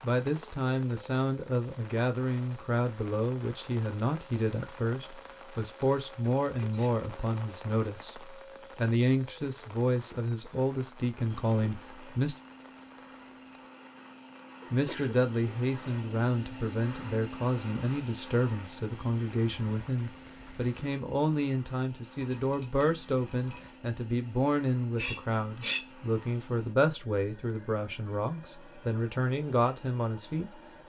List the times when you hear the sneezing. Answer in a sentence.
You can hear the sneezing from 6.5 to 7.0 s, from 14.7 to 15.2 s and from 24.9 to 25.9 s.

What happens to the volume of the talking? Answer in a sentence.
The loudness of the talking stays about the same.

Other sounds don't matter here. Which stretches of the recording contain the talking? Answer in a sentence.
You can hear the talking from 0.0 to 12.3 s and from 14.7 to 30.5 s.